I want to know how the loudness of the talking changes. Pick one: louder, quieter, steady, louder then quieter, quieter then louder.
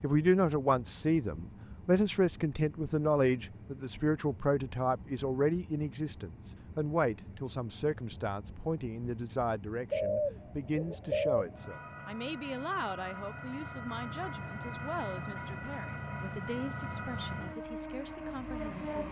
quieter.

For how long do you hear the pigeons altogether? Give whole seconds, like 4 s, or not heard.
2 s.